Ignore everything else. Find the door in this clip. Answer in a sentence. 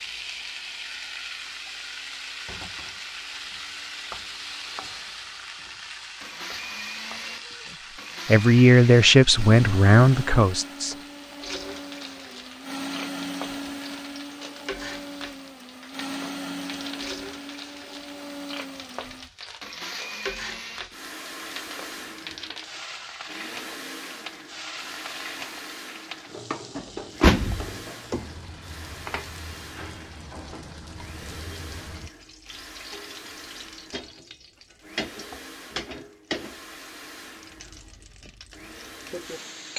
The door can be heard from 26.8 to 28.2 s.